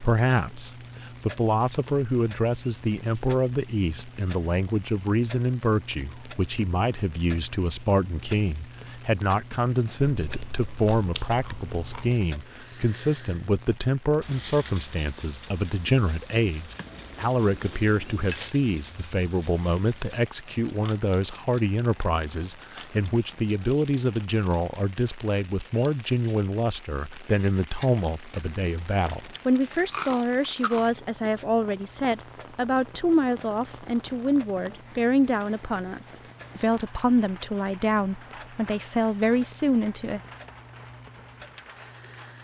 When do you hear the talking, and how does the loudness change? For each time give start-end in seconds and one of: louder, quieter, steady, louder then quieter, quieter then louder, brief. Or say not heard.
0.0-40.2 steady.